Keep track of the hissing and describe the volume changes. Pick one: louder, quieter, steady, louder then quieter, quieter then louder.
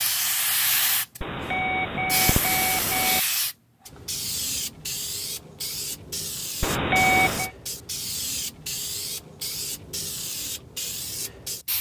quieter.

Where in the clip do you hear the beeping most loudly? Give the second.
7 s.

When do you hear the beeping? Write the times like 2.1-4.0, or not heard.
1.2-3.2, 6.6-7.5.